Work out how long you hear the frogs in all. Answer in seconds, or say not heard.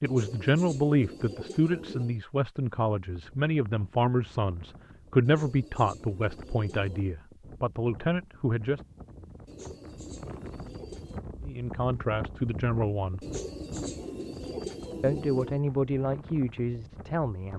not heard.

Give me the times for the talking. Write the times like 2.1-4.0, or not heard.
0.0-8.8, 11.4-13.2, 15.0-17.5.